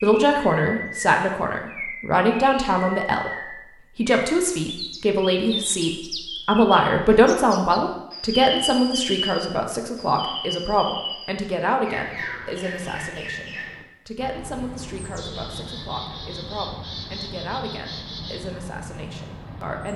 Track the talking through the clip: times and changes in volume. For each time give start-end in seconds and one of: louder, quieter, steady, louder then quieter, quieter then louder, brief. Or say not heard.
0.0-19.9 quieter.